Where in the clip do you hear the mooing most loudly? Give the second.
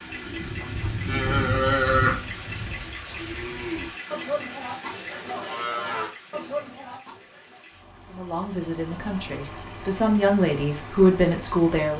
2 s.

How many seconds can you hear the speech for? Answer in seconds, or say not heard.
4 s.